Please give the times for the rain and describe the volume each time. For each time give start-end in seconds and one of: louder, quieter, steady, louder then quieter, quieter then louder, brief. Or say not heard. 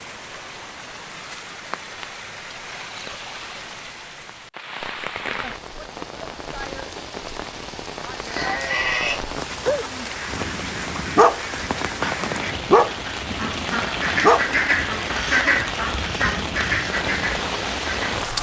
0.0-18.3 louder.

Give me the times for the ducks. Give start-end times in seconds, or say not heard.
10.0-18.2.